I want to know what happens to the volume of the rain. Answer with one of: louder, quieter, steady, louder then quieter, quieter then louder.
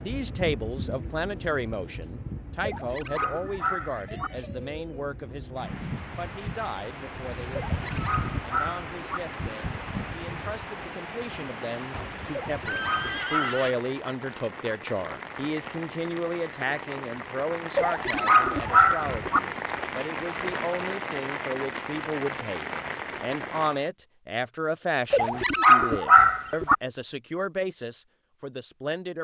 louder.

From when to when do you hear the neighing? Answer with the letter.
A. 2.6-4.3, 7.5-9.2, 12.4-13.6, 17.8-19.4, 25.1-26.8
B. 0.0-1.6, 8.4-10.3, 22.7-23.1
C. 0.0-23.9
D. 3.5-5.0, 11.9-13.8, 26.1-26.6
D.